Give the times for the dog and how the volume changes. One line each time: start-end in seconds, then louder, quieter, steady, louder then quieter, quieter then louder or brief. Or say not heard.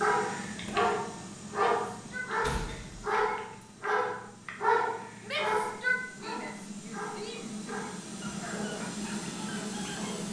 0.0-10.2 quieter.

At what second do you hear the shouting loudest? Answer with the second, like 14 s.
6 s.